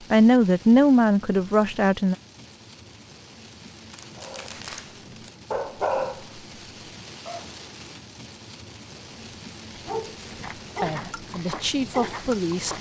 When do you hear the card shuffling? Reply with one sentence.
The card shuffling can be heard from 3.9 to 5.4 s.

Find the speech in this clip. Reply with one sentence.
The speech can be heard from 0.1 to 2.1 s and from 10.8 to 12.7 s.